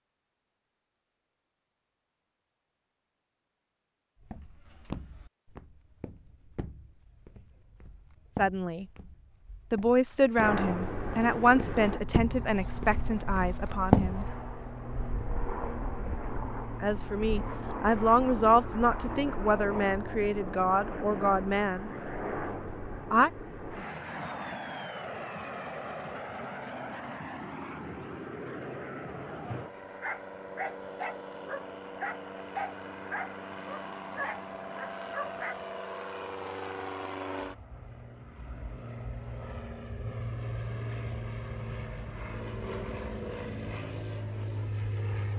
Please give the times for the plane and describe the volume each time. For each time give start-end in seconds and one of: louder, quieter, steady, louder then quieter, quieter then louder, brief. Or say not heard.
10.4-45.3 steady.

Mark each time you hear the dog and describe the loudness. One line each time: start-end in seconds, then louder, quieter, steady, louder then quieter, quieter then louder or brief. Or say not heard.
29.4-35.7 steady.